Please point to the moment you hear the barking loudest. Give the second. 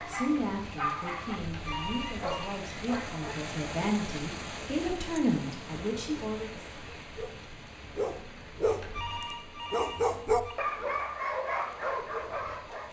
10 s.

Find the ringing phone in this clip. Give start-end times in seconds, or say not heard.
1.4-2.6, 8.6-10.6.